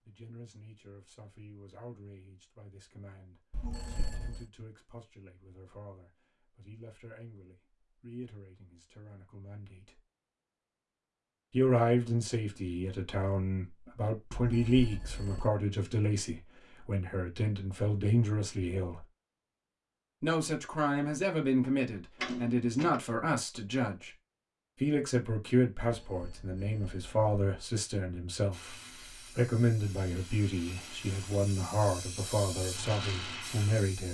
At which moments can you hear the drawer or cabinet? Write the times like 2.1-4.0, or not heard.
22.1-23.0.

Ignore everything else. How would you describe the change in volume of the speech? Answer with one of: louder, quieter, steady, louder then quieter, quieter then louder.
louder.